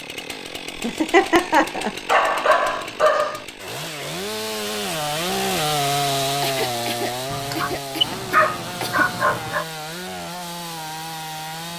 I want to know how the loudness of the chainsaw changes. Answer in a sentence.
The loudness of the chainsaw goes up, then down.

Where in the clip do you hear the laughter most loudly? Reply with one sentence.
The volume of the laughter peaks at 1 second.